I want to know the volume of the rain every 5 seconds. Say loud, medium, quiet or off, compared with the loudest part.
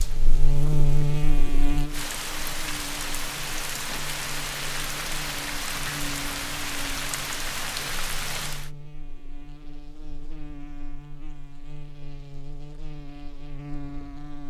loud, loud, off.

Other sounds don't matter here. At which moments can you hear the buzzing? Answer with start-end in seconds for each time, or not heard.
0.0-14.4.